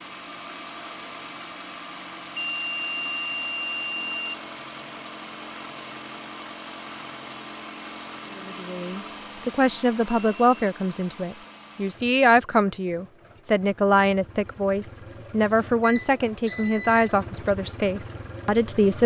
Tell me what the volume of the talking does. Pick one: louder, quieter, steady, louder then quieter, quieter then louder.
steady.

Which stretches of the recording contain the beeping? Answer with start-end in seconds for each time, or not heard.
2.4-4.3, 10.1-10.7, 15.8-17.2.